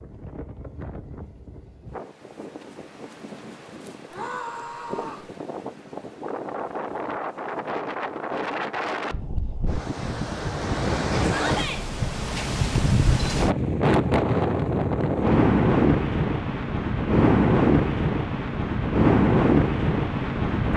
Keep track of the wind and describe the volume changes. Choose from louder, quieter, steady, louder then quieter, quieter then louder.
louder.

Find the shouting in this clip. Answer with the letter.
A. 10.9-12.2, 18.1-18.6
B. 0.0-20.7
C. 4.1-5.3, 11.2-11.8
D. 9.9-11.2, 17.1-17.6
C.